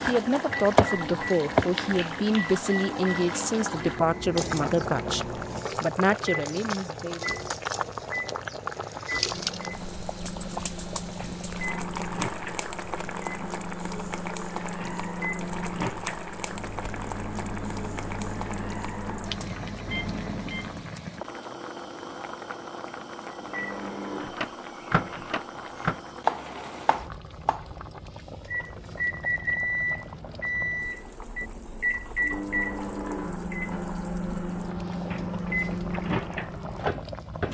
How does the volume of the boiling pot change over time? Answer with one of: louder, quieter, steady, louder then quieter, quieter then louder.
quieter.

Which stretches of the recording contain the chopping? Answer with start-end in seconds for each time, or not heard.
0.0-1.6, 25.8-27.6.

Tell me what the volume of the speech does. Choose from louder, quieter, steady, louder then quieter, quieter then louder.
steady.